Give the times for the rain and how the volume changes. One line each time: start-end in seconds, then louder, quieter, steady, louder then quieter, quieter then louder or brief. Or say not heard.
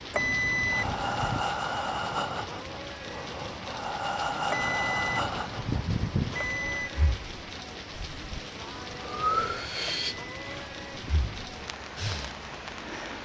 0.0-13.2 steady.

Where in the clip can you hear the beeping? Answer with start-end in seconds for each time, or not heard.
0.1-1.4, 4.5-6.9, 10.1-11.6.